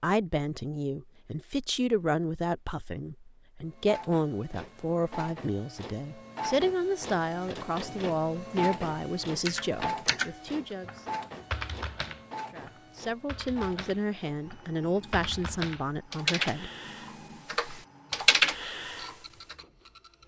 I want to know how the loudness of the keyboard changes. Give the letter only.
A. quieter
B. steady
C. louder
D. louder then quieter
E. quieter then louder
E.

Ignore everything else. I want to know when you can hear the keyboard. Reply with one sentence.
The keyboard can be heard from 9.4 to 19.6 s.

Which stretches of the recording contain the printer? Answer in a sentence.
You can hear the printer from 3.6 to 20.2 s.